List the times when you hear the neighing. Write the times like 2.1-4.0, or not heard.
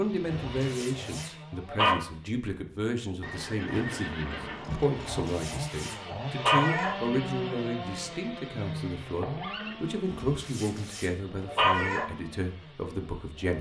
3.2-5.2, 9.1-9.8.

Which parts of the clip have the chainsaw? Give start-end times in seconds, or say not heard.
0.0-2.4, 4.7-13.5.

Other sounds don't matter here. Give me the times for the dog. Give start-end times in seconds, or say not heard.
0.5-1.9, 5.1-7.0, 10.3-12.1.